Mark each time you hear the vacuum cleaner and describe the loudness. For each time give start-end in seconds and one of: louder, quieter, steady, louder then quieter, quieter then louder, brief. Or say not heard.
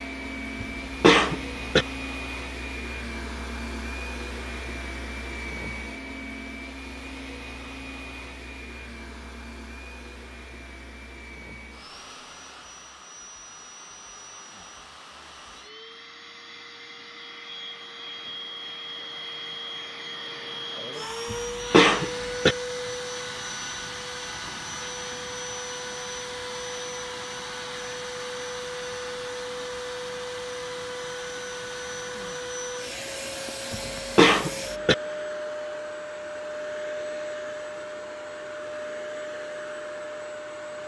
0.0-40.8 quieter then louder.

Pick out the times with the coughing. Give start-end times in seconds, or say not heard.
0.6-1.9, 21.3-22.6, 33.7-35.0.